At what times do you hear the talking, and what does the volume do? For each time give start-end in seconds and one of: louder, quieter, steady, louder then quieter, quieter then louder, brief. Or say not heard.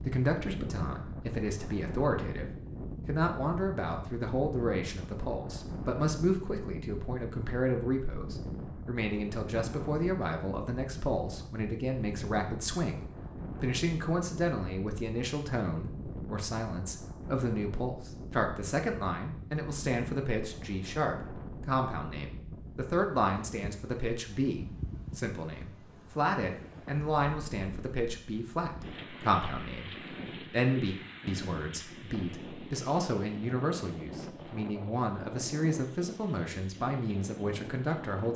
0.0-38.3 steady.